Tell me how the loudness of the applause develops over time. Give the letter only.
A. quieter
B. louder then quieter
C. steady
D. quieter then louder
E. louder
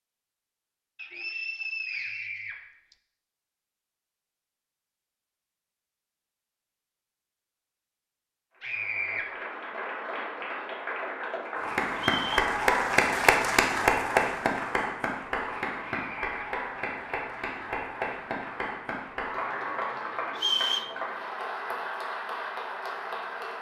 B.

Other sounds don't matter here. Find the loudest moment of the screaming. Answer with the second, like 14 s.
9 s.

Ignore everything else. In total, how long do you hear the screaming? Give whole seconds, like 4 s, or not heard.
2 s.